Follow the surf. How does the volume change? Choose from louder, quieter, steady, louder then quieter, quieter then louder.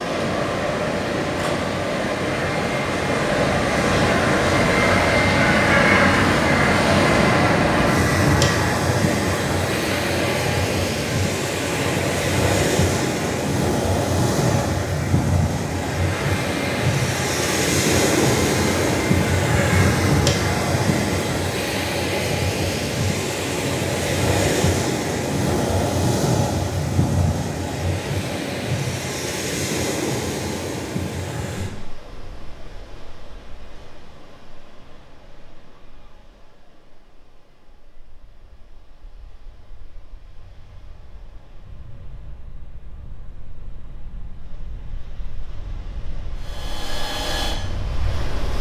quieter.